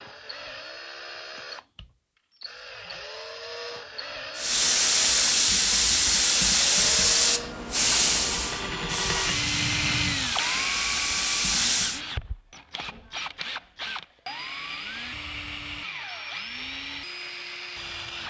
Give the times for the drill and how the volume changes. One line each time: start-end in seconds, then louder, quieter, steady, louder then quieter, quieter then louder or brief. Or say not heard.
0.0-18.2 louder then quieter.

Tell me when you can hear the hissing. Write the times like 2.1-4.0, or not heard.
4.3-12.0.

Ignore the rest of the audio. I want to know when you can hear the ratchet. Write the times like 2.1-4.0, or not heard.
not heard.